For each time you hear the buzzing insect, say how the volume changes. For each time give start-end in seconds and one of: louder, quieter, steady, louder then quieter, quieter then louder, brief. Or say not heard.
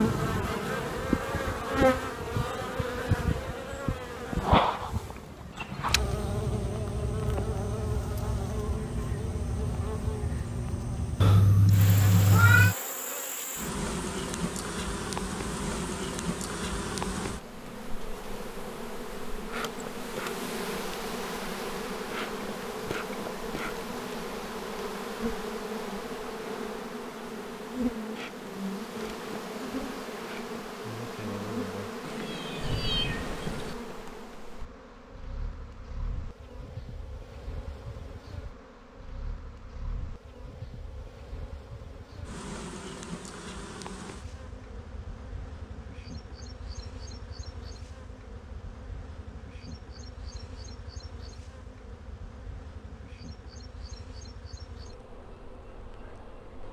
0.0-56.6 quieter.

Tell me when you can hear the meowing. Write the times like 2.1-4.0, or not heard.
11.2-12.8, 32.0-33.8.